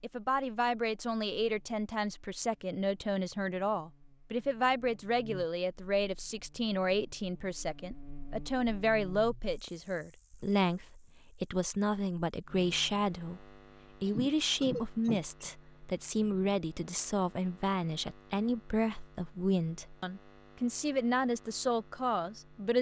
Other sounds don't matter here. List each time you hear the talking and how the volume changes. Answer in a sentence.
You can hear the talking from 0.0 to 22.7 s, at a steady volume.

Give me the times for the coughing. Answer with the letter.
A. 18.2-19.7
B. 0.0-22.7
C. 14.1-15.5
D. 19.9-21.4
C.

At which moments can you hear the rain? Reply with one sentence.
You can't hear the rain here.